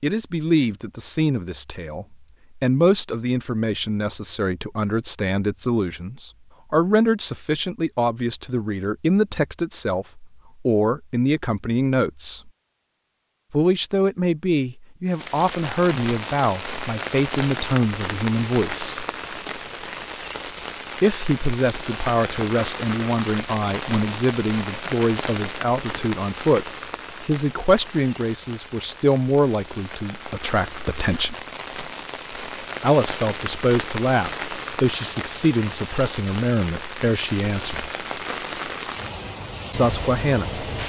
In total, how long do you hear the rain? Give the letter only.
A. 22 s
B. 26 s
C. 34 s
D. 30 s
B.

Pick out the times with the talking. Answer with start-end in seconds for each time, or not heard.
0.0-12.5, 13.5-19.1, 21.0-31.4, 32.8-37.9, 39.7-40.6.